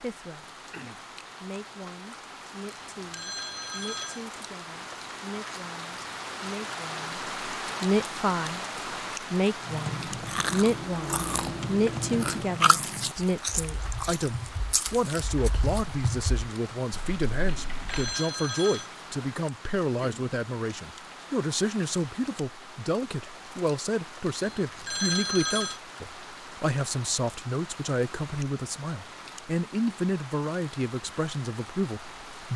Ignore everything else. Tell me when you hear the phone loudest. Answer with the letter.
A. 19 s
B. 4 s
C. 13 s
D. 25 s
D.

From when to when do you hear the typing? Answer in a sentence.
You can hear the typing from 9.6 to 18.1 s.